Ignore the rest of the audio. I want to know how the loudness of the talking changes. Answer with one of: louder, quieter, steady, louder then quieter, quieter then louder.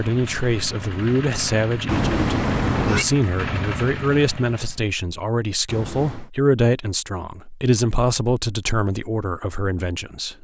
steady.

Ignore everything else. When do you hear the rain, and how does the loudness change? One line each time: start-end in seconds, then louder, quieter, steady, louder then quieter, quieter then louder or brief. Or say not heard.
not heard.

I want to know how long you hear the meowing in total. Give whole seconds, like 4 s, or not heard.
2 s.